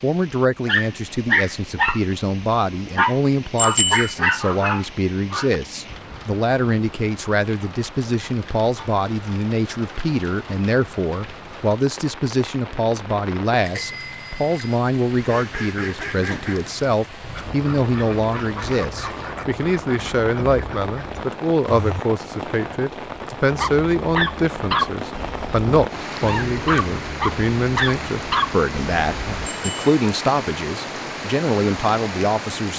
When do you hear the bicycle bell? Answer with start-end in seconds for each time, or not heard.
3.5-4.2, 13.6-14.8, 29.4-29.9.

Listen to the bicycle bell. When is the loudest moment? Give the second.
4 s.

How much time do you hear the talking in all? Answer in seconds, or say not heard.
33 s.